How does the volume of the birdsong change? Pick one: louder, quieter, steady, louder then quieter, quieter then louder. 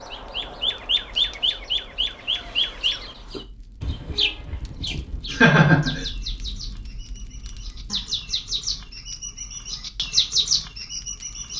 quieter then louder.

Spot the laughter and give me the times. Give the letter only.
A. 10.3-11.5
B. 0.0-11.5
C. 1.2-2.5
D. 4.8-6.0
D.